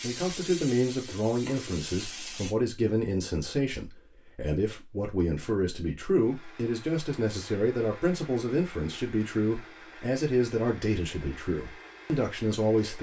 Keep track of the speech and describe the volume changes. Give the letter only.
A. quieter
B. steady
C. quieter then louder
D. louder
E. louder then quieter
B.